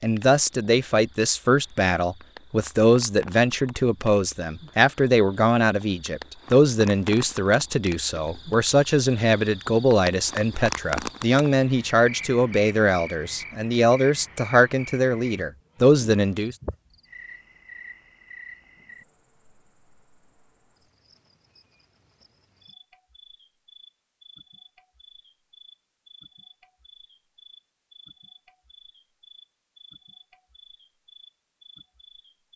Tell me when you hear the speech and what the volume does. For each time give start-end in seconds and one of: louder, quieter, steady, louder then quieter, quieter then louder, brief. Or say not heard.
0.0-16.6 steady.